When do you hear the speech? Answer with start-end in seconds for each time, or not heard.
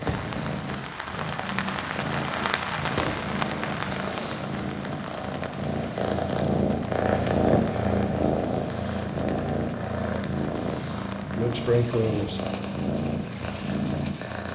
11.2-12.4.